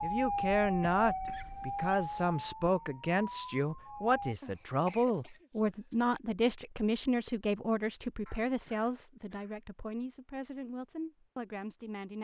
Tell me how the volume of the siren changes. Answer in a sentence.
The loudness of the siren goes down.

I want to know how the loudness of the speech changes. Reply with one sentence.
The volume of the speech goes down.